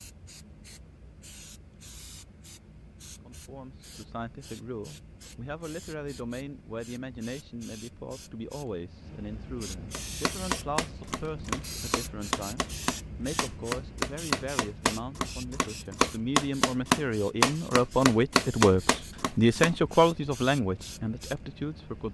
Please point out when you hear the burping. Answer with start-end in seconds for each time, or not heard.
not heard.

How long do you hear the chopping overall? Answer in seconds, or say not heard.
10 s.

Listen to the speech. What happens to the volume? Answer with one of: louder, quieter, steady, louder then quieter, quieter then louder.
louder.